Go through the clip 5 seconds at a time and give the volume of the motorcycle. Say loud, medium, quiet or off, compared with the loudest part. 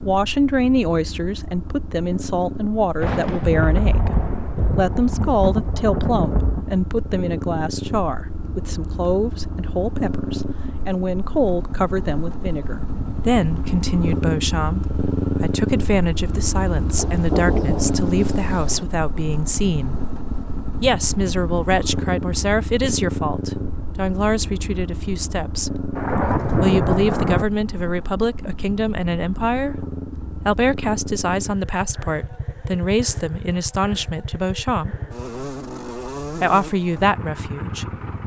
medium, medium, loud, loud, loud, medium, medium, medium.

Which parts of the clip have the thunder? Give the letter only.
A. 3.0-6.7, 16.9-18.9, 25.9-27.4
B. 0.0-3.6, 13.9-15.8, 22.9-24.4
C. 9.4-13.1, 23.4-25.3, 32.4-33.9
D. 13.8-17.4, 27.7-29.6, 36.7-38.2
A.